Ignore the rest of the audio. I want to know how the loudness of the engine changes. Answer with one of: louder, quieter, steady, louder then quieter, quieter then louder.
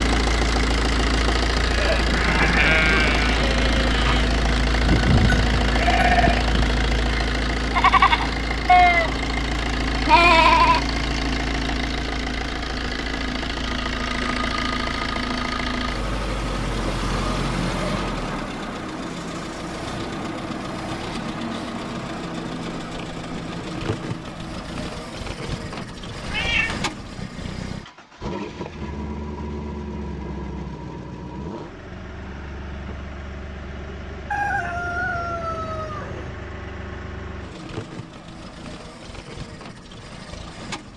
quieter.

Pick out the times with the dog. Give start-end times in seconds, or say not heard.
not heard.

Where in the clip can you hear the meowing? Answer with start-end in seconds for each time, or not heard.
26.2-26.9.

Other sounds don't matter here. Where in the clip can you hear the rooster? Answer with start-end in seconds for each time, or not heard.
34.3-36.3.